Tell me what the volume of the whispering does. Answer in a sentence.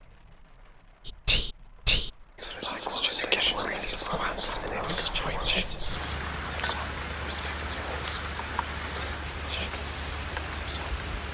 The loudness of the whispering goes down.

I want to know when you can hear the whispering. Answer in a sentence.
You can hear the whispering from 1.1 to 10.9 s.